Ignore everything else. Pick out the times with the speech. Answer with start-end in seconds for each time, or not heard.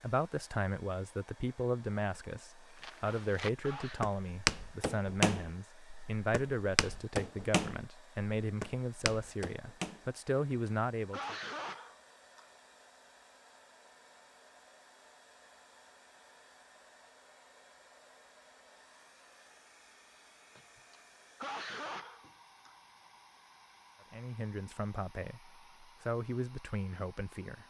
0.0-11.3, 24.1-27.6.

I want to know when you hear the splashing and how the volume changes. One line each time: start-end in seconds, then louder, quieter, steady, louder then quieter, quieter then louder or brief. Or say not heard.
not heard.